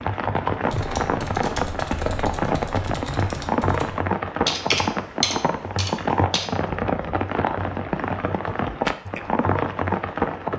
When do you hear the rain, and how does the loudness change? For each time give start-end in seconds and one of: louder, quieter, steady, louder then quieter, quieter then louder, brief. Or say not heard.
0.0-10.5 steady.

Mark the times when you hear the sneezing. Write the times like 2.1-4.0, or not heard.
not heard.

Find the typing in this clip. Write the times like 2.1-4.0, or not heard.
0.7-6.5.